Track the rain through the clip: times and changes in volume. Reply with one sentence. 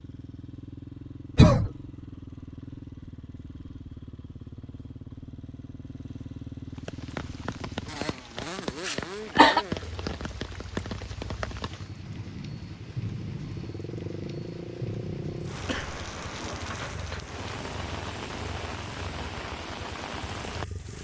You can hear the rain from 6.8 to 20.9 s, at a steady volume.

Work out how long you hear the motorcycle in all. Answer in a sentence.
You can hear the motorcycle for 21 seconds altogether.